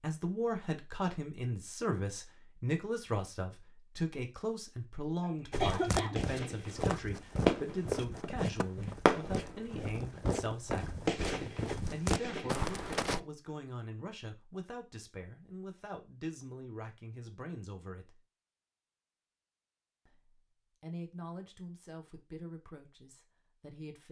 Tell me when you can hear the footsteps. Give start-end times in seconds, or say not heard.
5.5-13.2.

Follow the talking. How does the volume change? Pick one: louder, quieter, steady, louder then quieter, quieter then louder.
quieter.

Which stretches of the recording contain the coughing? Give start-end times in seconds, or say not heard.
5.2-6.2.